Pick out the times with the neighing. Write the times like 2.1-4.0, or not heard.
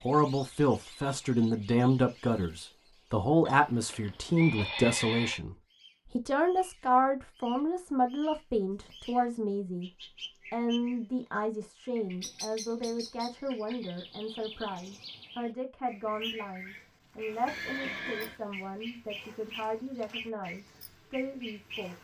3.5-5.4, 17.4-18.4.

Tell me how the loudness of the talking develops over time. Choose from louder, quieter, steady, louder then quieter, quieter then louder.
quieter.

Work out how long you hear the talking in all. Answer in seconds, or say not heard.
21 s.